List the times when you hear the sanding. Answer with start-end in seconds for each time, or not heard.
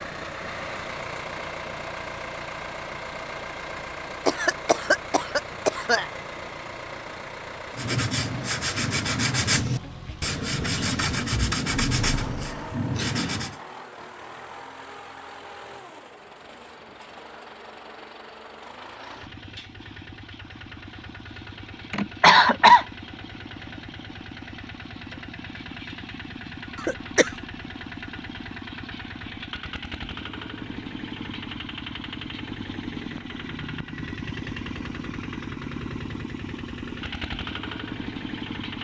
7.7-13.6.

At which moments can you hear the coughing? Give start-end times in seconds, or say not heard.
4.2-6.0, 21.9-22.9, 26.8-27.3.